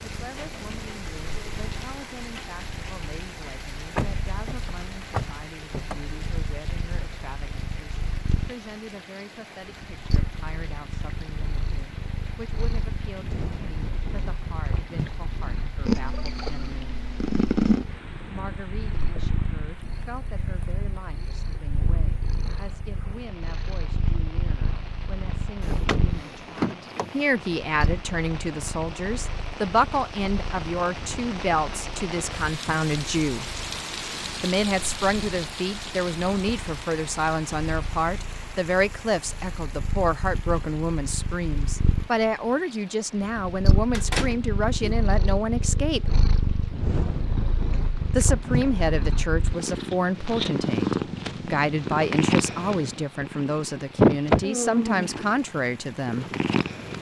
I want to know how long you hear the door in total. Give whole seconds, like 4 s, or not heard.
5 s.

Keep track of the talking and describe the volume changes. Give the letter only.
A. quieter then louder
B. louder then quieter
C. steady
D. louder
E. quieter
D.